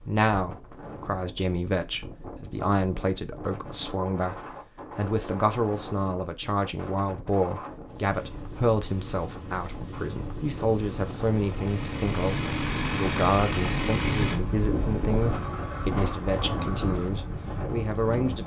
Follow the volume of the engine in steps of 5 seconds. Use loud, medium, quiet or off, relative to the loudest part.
off, off, loud, medium.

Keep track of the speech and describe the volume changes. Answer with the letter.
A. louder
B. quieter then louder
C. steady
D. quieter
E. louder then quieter
C.